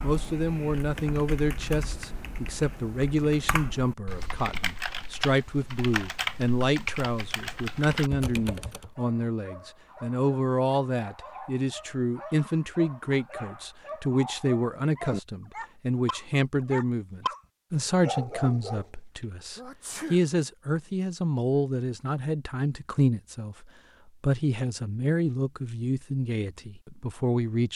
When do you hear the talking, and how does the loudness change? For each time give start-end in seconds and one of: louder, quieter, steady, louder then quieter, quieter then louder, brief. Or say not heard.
0.0-27.7 steady.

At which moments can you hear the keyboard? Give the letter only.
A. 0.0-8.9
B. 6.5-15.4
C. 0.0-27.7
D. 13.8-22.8
A.